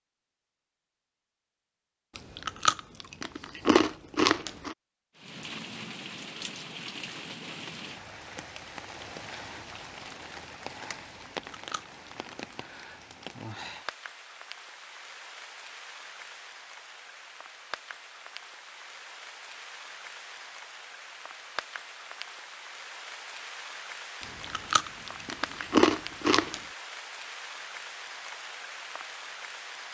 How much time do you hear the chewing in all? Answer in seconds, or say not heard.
6 s.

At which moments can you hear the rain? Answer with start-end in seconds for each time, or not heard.
5.2-29.8.